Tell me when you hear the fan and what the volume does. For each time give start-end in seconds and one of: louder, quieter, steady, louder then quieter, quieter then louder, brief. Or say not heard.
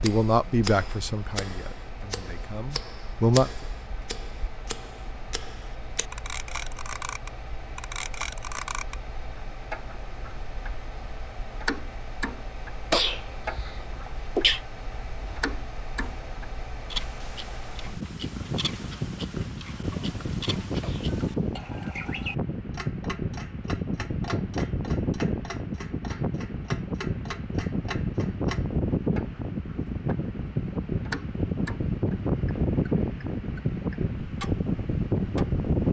0.0-35.8 louder.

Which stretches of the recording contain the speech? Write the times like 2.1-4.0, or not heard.
0.0-3.5.